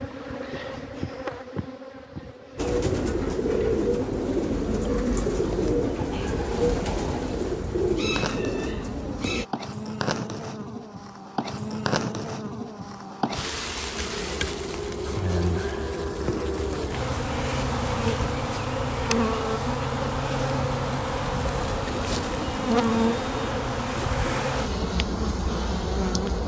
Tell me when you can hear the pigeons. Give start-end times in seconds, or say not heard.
2.5-9.4, 21.4-24.4.